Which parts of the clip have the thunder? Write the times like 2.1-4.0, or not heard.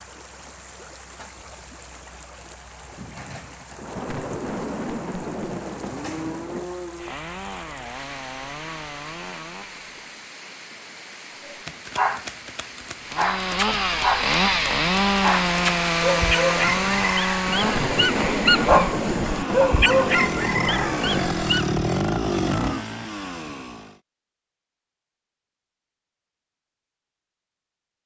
3.0-6.7, 16.6-21.4.